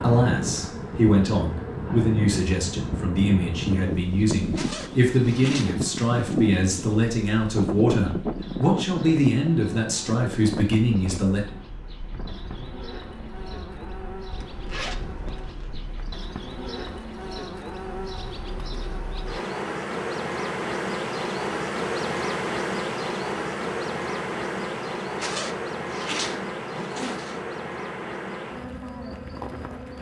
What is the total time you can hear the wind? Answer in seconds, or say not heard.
16 s.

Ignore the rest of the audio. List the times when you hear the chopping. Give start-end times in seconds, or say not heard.
not heard.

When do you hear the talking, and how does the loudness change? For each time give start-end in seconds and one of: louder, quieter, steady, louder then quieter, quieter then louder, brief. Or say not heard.
0.0-11.4 steady.